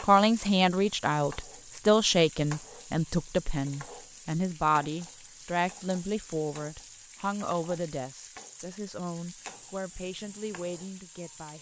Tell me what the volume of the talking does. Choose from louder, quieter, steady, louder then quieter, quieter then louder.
quieter.